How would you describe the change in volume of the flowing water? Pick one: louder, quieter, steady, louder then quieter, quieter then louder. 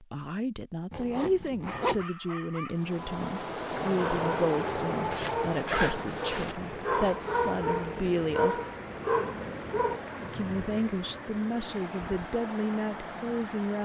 quieter.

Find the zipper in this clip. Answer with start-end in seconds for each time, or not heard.
0.9-2.0, 5.1-6.5, 9.9-10.7.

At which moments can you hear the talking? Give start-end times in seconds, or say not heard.
0.0-8.6, 10.3-13.7.